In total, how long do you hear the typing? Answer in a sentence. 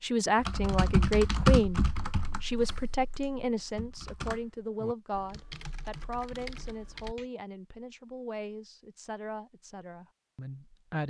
You can hear the typing for 7 seconds altogether.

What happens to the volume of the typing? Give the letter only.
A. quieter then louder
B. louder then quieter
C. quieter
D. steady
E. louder
C.